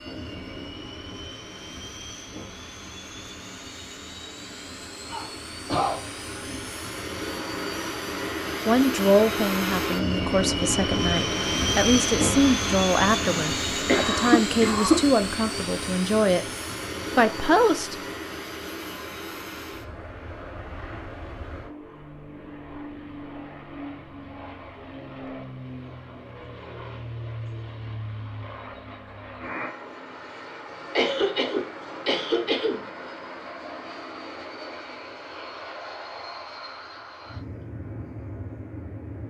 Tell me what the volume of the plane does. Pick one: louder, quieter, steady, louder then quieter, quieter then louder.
louder then quieter.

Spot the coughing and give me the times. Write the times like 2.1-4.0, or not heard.
5.0-6.7, 13.8-15.0, 30.9-32.9.